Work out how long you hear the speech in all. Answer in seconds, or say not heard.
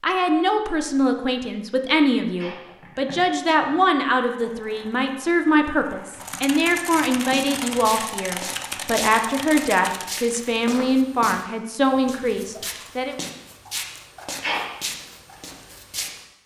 13 s.